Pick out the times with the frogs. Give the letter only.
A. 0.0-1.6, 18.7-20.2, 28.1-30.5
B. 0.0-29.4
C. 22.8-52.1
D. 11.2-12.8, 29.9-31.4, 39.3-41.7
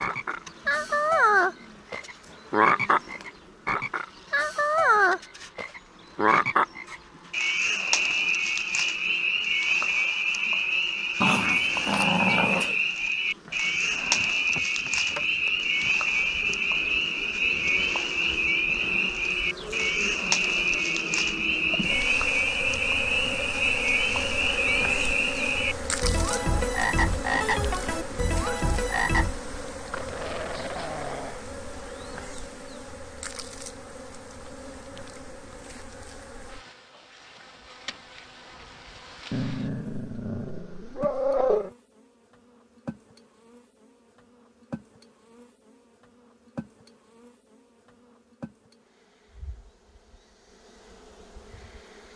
B.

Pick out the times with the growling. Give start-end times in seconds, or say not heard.
11.2-12.8, 29.9-31.4, 39.3-41.7.